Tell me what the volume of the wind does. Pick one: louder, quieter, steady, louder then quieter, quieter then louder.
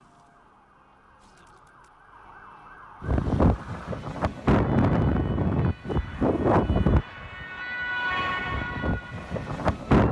quieter then louder.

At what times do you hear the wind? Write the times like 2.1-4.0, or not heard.
3.0-10.0.